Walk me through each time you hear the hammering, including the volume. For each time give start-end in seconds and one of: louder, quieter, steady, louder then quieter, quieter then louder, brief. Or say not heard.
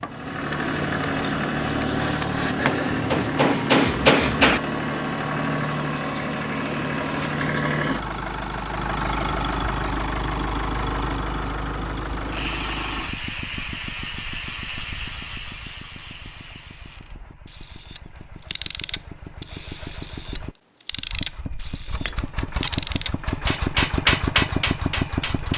0.0-4.6 louder
22.1-22.8 brief
23.4-25.5 brief.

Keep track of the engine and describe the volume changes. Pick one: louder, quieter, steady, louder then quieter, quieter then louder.
quieter then louder.